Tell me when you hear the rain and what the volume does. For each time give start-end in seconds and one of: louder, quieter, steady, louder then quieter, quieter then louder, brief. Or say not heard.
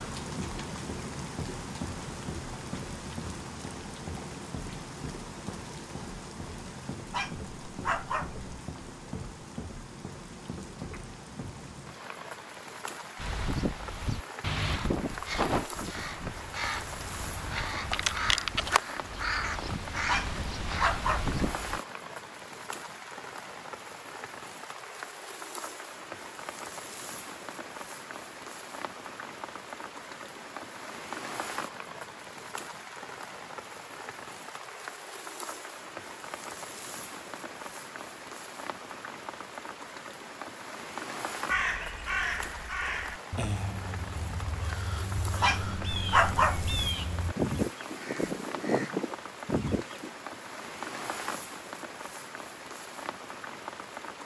0.0-54.2 steady.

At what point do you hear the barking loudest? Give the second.
46 s.